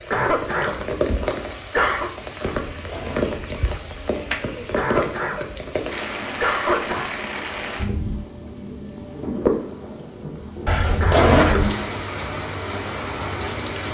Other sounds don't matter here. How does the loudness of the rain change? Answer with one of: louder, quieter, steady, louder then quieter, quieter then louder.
steady.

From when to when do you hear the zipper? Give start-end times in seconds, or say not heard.
2.6-4.5, 10.7-11.8.